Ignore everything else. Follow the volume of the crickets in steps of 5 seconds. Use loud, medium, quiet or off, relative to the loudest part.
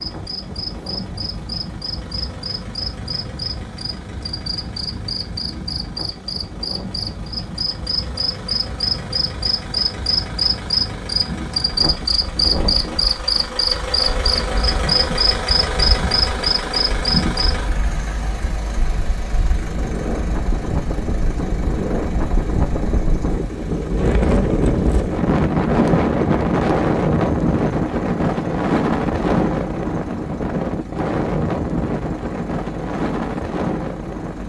medium, medium, loud, loud, off, off, off.